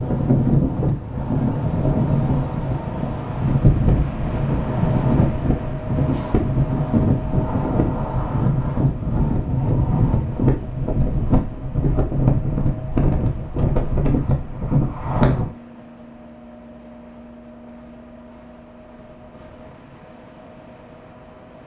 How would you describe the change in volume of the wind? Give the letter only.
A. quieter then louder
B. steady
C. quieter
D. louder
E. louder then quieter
B.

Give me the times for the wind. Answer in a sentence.
You can hear the wind from 0.0 to 15.4 s.